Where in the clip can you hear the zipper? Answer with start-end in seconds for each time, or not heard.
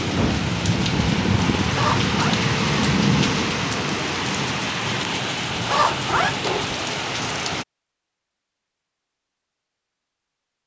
1.7-2.4, 5.7-6.8.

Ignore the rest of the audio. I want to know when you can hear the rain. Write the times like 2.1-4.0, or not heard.
0.0-7.7.